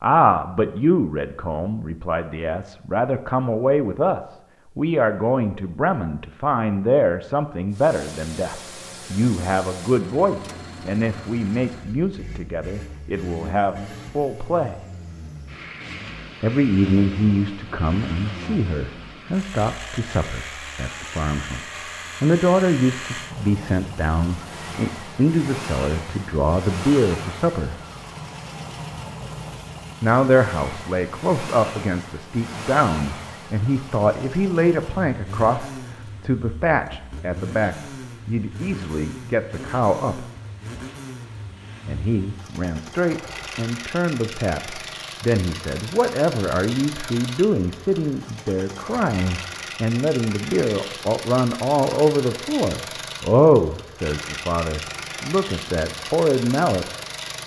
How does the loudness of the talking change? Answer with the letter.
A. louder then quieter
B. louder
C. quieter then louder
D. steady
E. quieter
D.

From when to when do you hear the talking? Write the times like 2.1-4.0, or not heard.
0.0-14.8, 16.4-27.8, 30.0-40.2, 41.9-56.9.